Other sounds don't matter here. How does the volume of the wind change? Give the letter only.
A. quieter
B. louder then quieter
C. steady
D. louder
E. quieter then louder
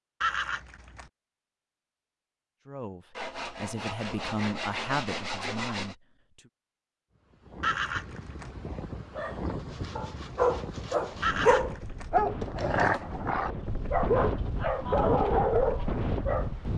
D.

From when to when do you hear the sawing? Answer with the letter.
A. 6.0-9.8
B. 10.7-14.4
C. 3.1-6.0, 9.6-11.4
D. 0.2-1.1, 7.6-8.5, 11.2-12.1
C.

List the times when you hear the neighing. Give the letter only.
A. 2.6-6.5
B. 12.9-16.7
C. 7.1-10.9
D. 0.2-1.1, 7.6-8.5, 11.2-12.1
D.